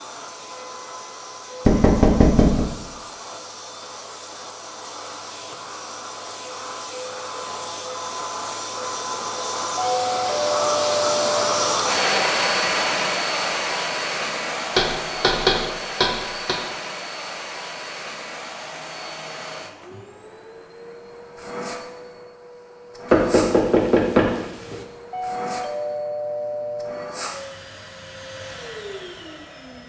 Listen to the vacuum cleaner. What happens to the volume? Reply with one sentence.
The volume of the vacuum cleaner goes up, then down.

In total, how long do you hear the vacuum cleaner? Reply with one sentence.
The vacuum cleaner can be heard for 30 seconds in total.